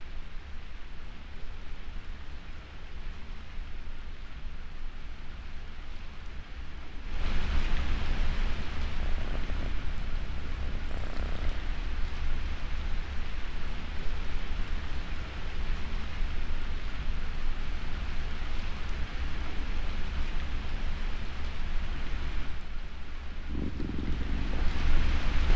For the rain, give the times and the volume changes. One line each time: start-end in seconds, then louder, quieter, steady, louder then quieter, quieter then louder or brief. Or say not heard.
0.0-25.5 louder.